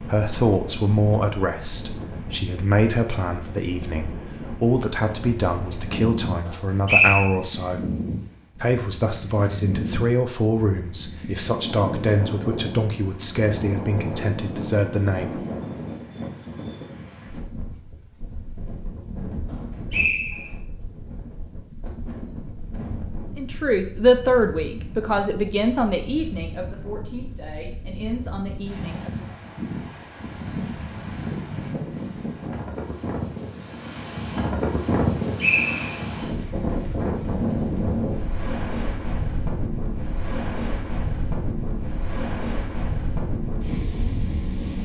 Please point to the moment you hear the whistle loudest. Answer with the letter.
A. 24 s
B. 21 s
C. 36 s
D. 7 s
D.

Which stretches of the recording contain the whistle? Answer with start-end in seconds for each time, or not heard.
6.5-7.2, 19.5-20.5, 35.4-35.9.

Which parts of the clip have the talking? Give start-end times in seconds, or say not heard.
0.0-7.8, 8.6-15.4, 23.4-29.1.